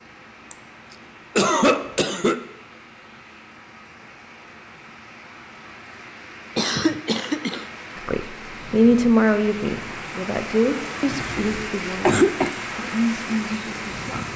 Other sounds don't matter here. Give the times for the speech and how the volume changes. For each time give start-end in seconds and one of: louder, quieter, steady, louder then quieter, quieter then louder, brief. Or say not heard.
8.1-14.3 quieter then louder.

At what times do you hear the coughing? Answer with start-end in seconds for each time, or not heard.
0.5-2.4, 6.5-7.7, 11.1-12.5.